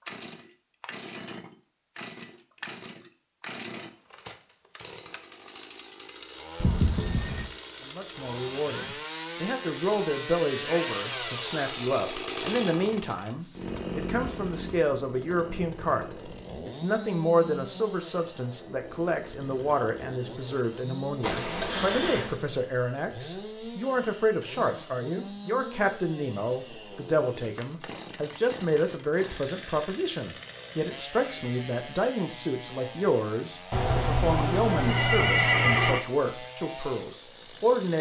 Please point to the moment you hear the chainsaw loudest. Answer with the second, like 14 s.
11 s.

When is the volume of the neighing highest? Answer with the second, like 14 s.
36 s.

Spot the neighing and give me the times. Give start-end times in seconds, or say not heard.
6.5-7.5, 21.2-22.4, 33.7-36.0.